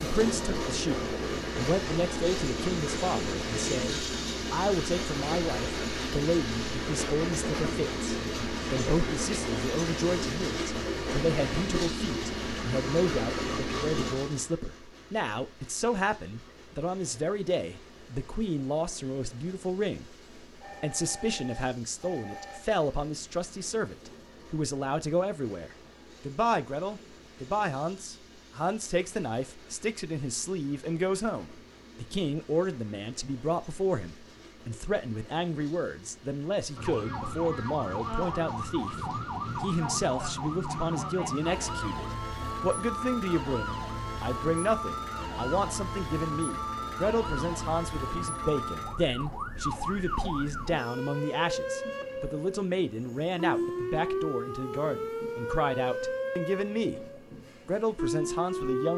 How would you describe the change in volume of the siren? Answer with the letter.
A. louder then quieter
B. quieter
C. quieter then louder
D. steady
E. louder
D.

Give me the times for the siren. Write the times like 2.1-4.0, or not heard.
36.8-58.9.